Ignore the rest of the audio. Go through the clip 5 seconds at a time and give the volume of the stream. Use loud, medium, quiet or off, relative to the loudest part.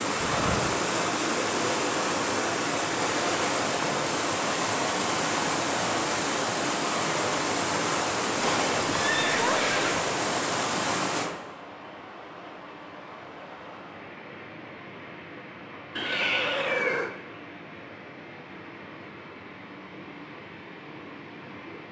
loud, loud, medium, quiet, quiet.